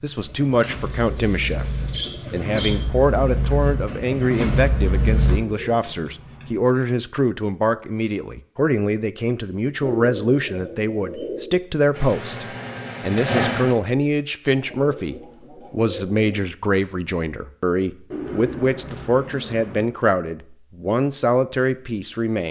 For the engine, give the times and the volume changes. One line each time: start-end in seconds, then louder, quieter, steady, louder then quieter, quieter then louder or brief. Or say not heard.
0.1-5.4 louder
11.9-13.8 brief.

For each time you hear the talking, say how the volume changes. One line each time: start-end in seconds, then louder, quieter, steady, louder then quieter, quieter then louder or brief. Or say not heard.
0.0-22.4 steady.